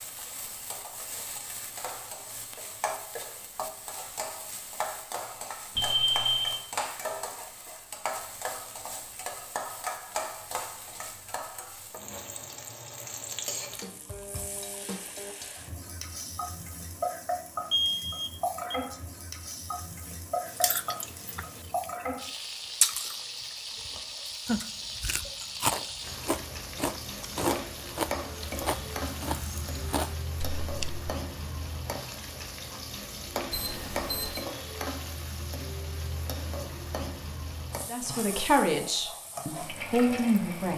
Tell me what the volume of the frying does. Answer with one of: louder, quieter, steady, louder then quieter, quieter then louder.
steady.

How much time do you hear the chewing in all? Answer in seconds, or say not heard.
9 s.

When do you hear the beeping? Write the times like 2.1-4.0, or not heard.
5.8-6.7, 17.7-18.8, 33.5-34.5.